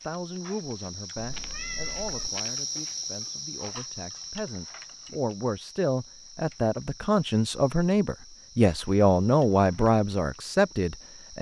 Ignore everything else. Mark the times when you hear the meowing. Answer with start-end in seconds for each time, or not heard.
1.1-2.3.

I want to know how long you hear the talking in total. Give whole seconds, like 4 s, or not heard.
11 s.